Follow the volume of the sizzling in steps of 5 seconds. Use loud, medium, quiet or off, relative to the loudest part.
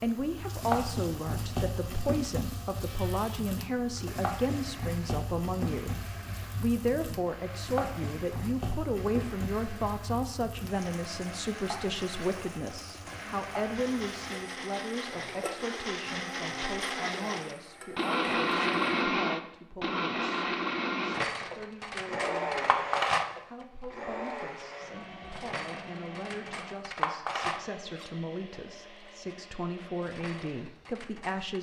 loud, loud, medium, medium, off, off, off.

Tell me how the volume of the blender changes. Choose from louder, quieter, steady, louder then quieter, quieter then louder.
louder then quieter.